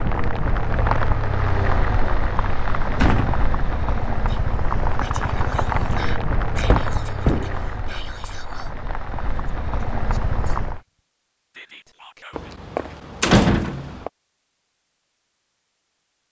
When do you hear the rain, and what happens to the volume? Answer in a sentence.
The rain can be heard from 0.0 to 10.8 s, getting quieter.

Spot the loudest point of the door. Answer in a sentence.
The volume of the door peaks at 13 seconds.